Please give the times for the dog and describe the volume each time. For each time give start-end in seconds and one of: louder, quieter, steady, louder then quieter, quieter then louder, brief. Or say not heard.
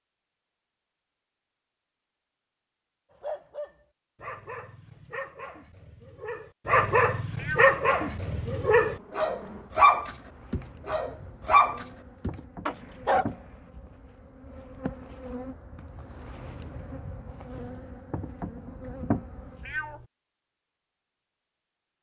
3.2-13.3 louder.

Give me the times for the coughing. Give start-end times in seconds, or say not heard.
not heard.